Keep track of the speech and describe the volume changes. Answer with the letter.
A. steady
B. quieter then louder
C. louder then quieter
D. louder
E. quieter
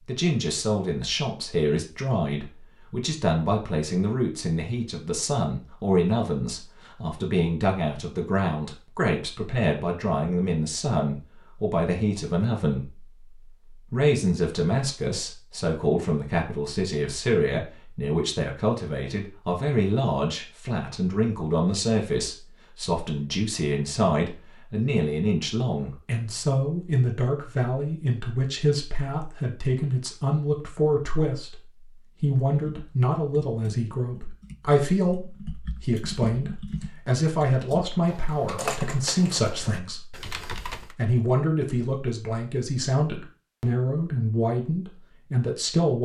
A.